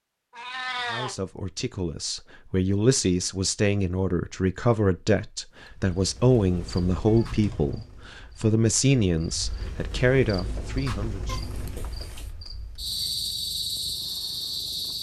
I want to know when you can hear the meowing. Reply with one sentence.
You can hear the meowing from 0.3 to 1.1 s, from 7.0 to 7.8 s and from 11.2 to 12.3 s.